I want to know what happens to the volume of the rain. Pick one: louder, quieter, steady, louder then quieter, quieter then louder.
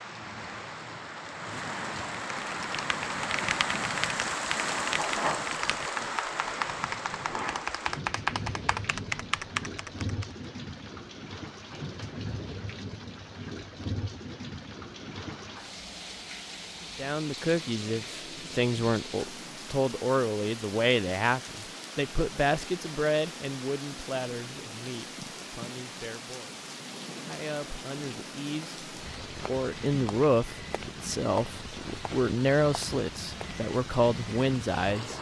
quieter.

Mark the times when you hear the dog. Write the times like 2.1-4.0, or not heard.
not heard.